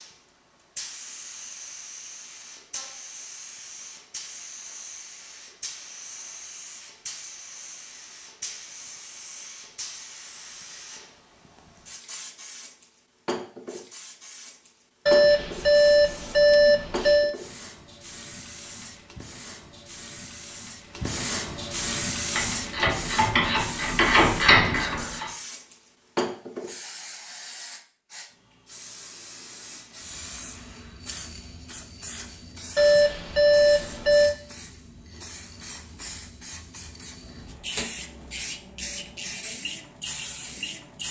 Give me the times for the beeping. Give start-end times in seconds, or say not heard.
15.1-17.4, 32.8-34.4.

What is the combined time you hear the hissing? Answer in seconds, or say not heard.
41 s.